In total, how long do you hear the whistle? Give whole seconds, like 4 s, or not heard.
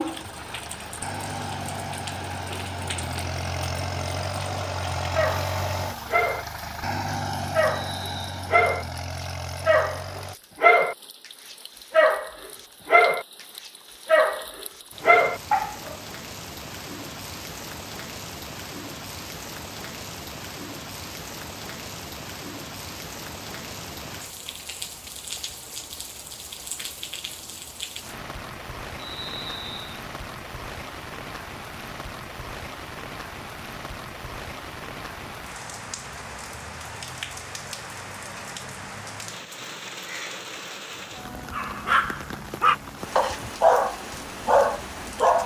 2 s.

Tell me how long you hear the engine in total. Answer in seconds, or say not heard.
10 s.